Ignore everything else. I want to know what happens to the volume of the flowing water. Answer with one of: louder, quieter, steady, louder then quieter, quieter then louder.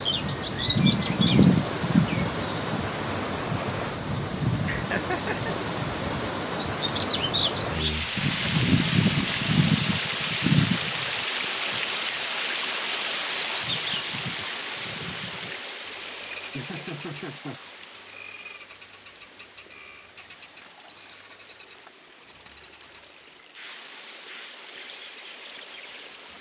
quieter.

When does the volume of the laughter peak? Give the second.
5 s.